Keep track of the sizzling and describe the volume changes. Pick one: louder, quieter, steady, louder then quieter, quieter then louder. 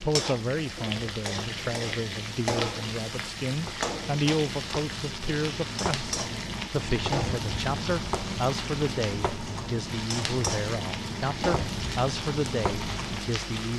steady.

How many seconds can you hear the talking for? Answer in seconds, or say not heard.
14 s.